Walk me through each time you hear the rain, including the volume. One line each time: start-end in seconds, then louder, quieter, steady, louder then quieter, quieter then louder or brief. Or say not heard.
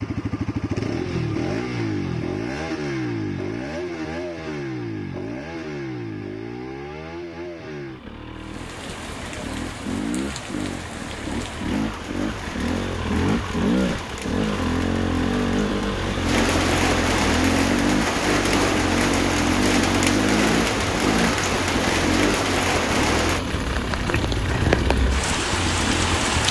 8.3-26.4 louder.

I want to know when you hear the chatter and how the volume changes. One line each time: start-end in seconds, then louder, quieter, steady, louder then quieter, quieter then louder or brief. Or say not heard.
not heard.